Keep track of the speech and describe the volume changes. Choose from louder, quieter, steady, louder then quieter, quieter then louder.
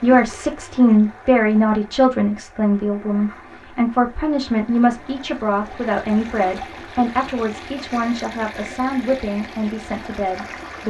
quieter.